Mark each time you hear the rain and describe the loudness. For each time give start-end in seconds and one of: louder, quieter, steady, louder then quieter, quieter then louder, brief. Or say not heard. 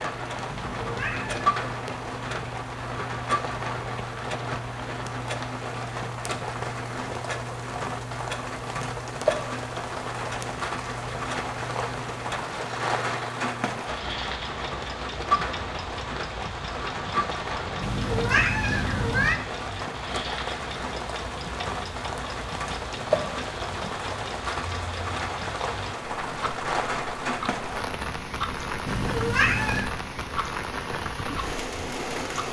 0.0-32.4 steady.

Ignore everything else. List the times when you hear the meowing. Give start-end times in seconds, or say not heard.
0.5-1.4, 17.8-19.4, 28.9-29.9.